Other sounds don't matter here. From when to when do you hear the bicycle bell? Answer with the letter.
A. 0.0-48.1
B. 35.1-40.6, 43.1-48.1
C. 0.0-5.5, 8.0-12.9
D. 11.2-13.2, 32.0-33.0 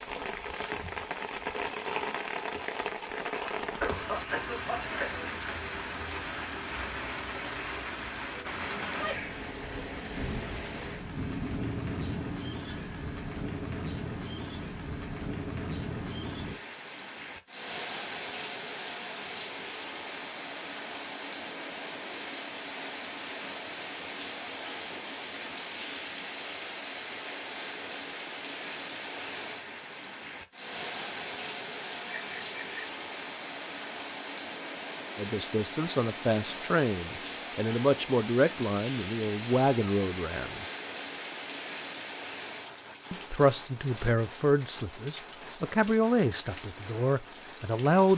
D.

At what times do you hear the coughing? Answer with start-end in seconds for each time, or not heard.
3.3-5.2.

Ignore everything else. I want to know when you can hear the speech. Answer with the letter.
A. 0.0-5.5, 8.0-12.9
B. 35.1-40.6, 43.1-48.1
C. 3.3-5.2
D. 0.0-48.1
B.